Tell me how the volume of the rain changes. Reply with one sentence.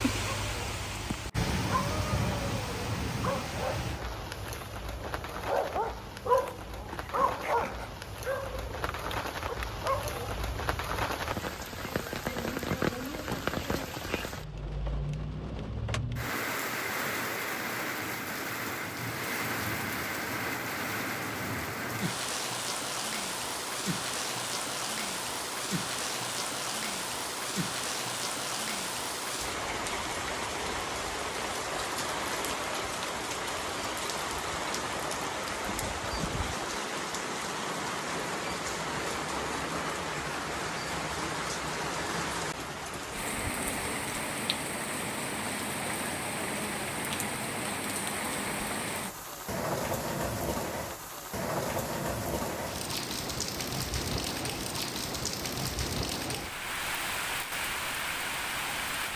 The loudness of the rain stays about the same.